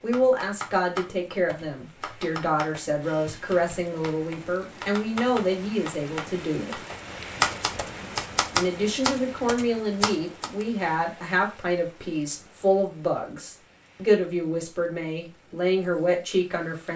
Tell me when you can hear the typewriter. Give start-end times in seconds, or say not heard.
0.1-10.7.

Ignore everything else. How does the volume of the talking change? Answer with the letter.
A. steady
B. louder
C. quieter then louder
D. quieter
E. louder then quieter
A.